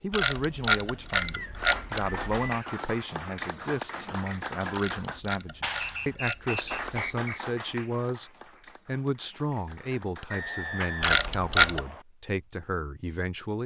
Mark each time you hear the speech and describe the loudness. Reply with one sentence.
The speech can be heard from 0.0 to 13.6 s, at a steady volume.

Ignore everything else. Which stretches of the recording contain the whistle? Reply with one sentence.
The whistle can be heard from 1.2 to 2.9 s, from 5.8 to 7.4 s and from 10.3 to 12.1 s.